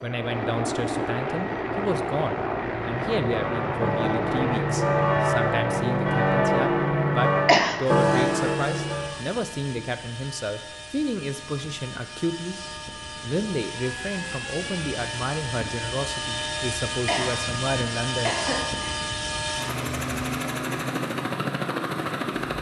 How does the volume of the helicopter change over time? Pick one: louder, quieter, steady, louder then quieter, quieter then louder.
quieter then louder.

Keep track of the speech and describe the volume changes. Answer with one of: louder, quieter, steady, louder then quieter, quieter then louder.
steady.